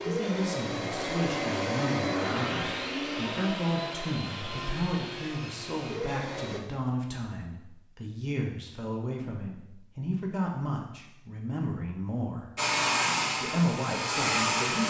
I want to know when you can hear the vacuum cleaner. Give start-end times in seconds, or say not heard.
0.0-6.6, 12.6-14.8.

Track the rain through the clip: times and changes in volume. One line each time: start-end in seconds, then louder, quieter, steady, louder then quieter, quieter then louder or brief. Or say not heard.
not heard.